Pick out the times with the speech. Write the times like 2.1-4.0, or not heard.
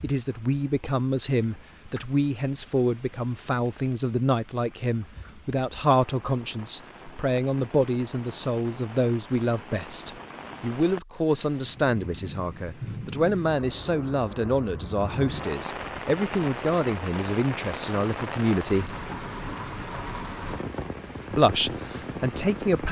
0.0-18.9, 21.3-22.8.